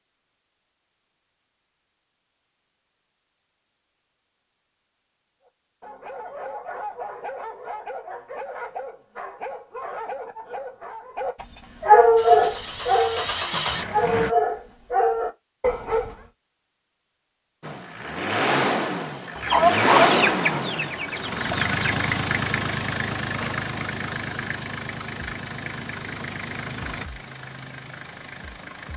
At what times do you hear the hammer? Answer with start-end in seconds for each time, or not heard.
not heard.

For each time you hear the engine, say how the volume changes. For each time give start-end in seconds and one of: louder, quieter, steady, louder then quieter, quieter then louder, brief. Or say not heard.
12.2-14.3 brief
17.6-28.9 quieter.